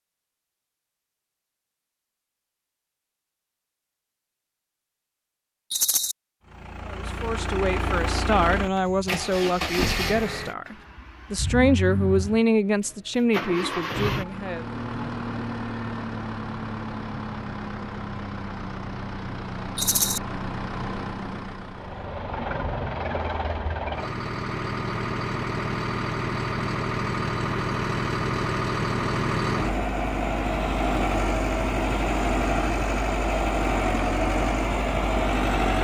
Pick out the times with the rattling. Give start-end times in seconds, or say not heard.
5.7-6.2, 19.8-20.2.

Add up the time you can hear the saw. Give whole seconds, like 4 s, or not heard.
not heard.